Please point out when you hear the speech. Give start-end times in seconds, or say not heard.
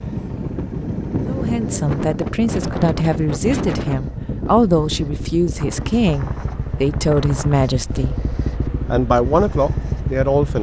1.2-8.2, 8.9-10.5.